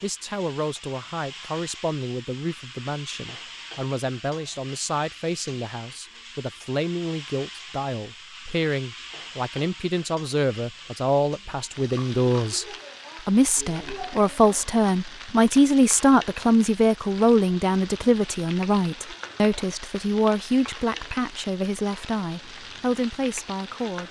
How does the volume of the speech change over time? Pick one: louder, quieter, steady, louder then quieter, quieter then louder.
louder then quieter.